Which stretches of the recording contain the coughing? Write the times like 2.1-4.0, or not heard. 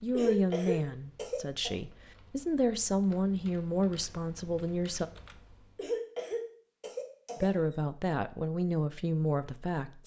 0.1-1.7, 5.8-7.8.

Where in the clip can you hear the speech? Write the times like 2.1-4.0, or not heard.
0.0-5.0, 7.3-10.0.